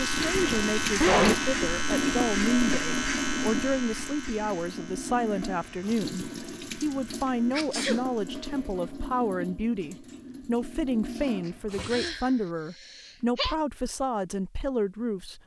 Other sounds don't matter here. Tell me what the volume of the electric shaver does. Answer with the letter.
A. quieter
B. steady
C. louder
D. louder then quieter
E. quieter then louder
A.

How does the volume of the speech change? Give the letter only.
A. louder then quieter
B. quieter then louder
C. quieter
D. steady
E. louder
D.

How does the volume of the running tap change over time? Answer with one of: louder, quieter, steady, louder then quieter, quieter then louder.
quieter.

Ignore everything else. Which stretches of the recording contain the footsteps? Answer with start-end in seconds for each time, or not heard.
not heard.